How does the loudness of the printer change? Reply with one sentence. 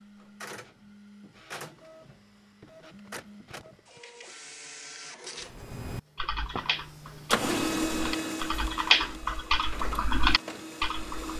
The loudness of the printer goes up, then down.